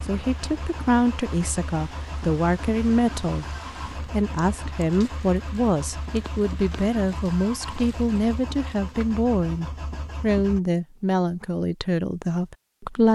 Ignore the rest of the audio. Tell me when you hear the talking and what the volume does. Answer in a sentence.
The talking can be heard from 0.1 to 13.0 s, at a steady volume.